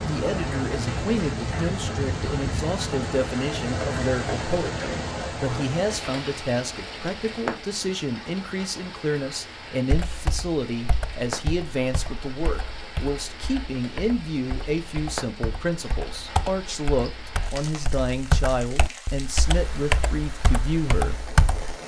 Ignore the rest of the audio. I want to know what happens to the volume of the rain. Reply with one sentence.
The loudness of the rain goes down.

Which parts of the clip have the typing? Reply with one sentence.
The typing can be heard from 9.9 to 21.8 s.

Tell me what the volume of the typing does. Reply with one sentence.
The loudness of the typing goes up.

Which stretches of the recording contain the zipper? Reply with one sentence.
You can't hear the zipper here.